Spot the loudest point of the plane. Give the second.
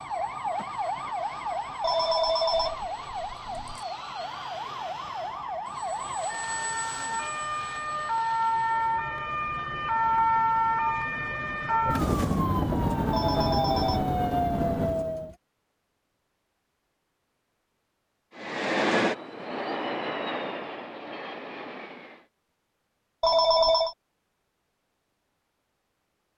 19 s.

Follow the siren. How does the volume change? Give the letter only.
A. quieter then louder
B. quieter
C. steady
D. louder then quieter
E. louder
E.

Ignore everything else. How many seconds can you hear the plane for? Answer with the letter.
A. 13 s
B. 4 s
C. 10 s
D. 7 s
A.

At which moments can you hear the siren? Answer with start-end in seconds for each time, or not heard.
0.0-15.3.